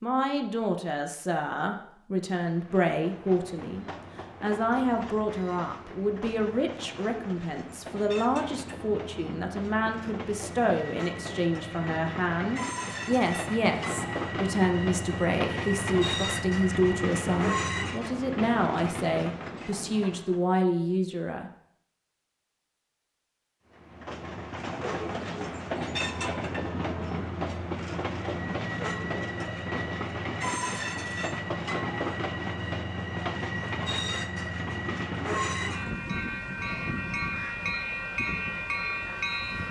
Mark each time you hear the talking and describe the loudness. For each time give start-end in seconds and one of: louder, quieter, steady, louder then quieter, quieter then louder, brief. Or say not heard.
0.0-21.5 steady.